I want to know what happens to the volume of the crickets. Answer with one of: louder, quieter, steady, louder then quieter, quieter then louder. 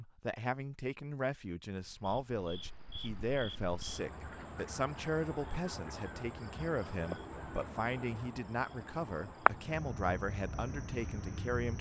louder then quieter.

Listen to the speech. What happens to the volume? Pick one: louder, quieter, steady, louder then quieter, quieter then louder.
steady.